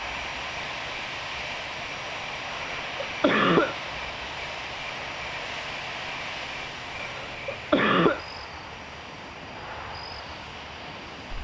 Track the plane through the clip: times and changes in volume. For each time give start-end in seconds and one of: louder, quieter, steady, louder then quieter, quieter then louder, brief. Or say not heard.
0.0-11.3 quieter.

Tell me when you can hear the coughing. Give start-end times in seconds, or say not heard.
2.5-3.8, 7.0-8.2.